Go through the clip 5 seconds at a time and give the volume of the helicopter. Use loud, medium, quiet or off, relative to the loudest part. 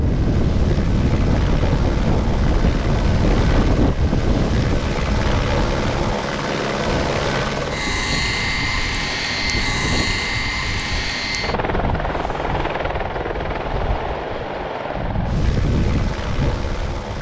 medium, loud, loud, medium.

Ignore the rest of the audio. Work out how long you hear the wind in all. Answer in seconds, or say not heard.
17 s.